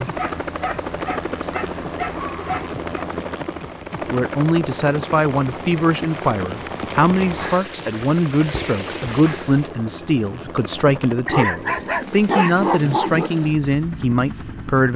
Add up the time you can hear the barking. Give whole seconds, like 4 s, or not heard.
5 s.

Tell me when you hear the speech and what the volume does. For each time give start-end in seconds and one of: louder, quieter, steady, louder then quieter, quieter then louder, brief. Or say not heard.
4.1-14.9 steady.